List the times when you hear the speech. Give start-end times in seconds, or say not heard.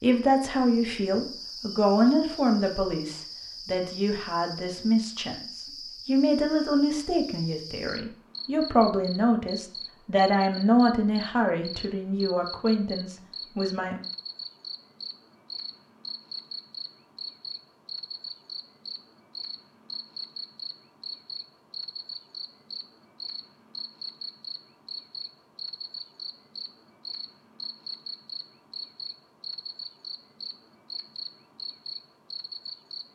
0.0-14.0.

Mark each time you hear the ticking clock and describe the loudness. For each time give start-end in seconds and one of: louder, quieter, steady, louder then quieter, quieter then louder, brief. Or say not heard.
not heard.